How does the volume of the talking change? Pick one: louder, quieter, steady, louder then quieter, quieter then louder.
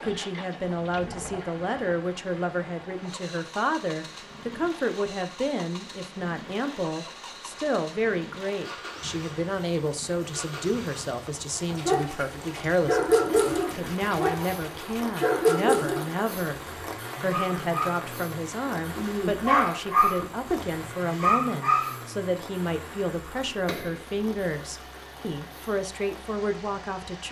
steady.